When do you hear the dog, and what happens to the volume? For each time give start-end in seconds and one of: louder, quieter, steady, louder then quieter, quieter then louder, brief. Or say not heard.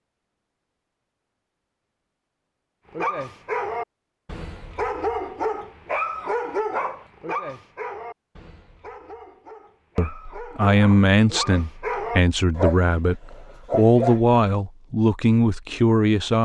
2.9-14.2 quieter then louder.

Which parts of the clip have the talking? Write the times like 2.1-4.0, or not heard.
9.9-16.3.